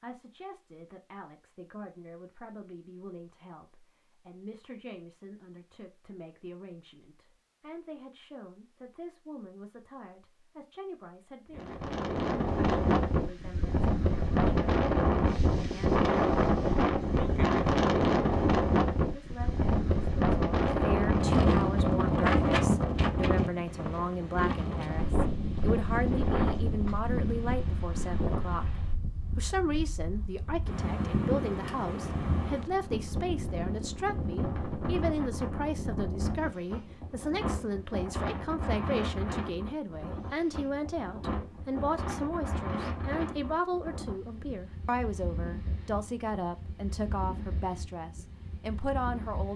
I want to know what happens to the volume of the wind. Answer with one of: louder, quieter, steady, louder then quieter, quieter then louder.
quieter.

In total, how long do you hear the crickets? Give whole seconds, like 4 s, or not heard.
not heard.